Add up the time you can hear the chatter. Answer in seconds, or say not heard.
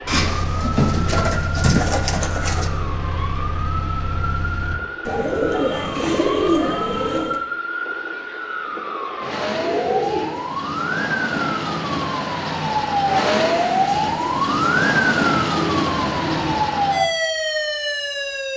not heard.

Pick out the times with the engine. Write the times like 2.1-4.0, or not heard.
0.1-4.8.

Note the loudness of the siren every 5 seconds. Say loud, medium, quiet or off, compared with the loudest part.
medium, medium, loud, loud.